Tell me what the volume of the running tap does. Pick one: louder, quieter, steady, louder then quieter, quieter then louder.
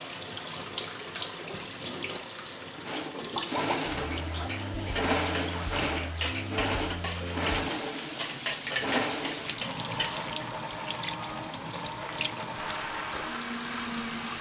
steady.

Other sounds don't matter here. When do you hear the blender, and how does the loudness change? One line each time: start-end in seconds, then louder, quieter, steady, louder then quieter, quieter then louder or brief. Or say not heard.
2.8-14.3 quieter.